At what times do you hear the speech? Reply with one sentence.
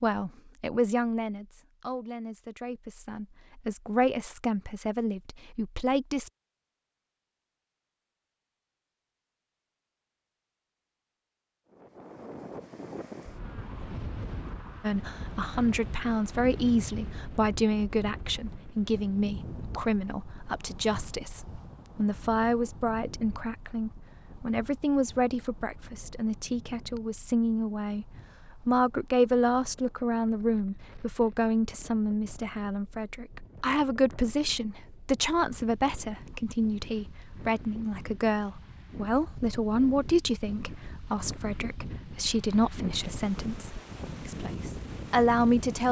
You can hear the speech from 0.0 to 6.3 s and from 14.8 to 45.8 s.